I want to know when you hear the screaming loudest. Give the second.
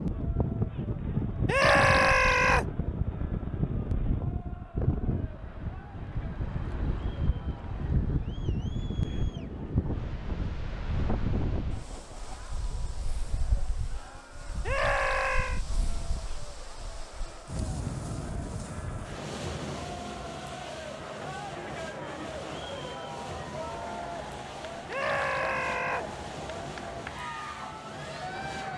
2 s.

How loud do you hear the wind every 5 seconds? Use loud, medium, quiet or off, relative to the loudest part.
loud, loud, medium, medium, medium, medium.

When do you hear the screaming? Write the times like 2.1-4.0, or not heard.
1.4-2.6, 14.7-15.6, 24.9-26.1.